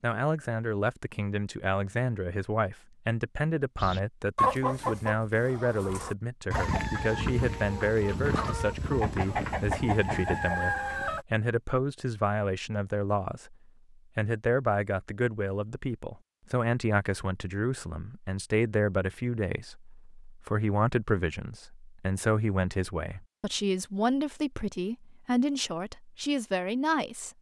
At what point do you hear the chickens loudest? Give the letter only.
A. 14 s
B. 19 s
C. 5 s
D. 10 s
C.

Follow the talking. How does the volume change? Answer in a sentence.
The volume of the talking stays about the same.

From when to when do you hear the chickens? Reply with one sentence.
You can hear the chickens from 3.8 to 11.2 s.